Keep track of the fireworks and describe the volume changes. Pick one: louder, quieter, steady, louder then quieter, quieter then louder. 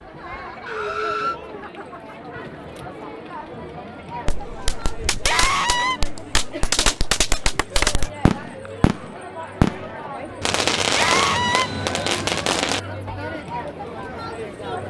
louder.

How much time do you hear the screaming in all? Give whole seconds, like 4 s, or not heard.
2 s.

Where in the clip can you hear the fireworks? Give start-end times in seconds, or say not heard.
4.2-12.8.